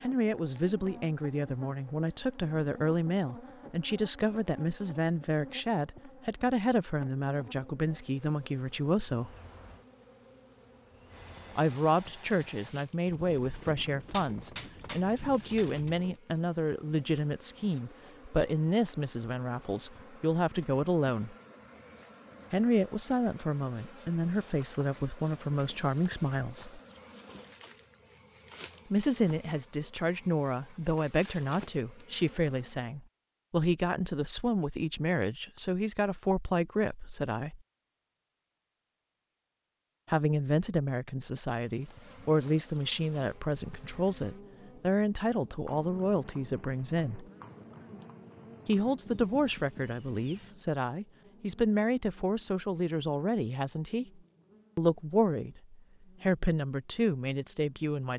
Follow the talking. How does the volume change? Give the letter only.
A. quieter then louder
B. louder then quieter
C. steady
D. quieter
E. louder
C.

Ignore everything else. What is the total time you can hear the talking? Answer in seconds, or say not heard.
49 s.